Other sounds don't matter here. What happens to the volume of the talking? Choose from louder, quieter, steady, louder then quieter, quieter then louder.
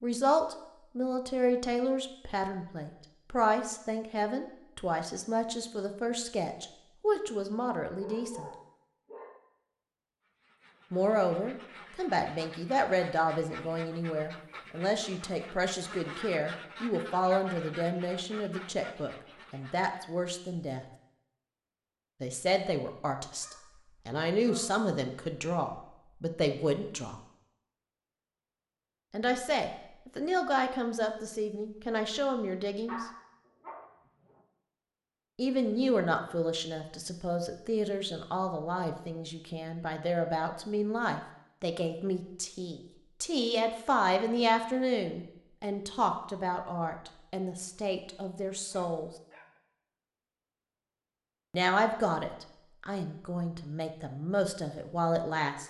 steady.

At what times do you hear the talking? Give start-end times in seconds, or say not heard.
0.0-8.4, 10.9-20.9, 22.2-27.1, 29.1-33.0, 35.4-49.1, 51.5-55.6.